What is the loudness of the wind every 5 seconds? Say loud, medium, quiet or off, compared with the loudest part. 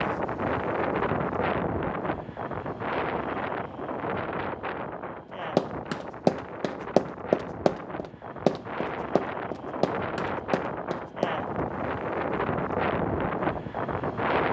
loud, medium, loud.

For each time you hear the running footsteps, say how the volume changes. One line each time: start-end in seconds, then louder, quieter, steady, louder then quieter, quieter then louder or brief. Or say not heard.
5.5-11.4 quieter.